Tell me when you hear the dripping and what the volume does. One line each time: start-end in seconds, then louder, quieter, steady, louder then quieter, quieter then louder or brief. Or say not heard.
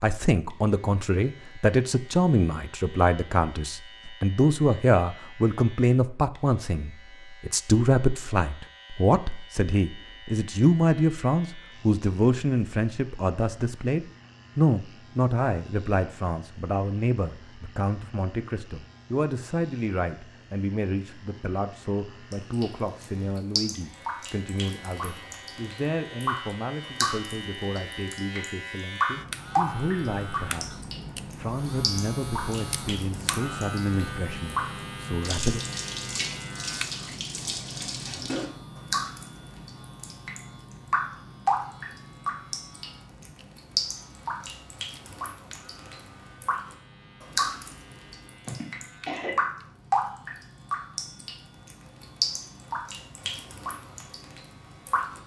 22.3-55.2 steady.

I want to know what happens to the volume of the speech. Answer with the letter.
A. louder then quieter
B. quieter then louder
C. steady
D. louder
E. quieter
E.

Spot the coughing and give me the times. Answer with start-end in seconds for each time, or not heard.
48.5-49.4.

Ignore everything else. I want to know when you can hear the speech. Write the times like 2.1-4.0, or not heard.
0.0-35.6.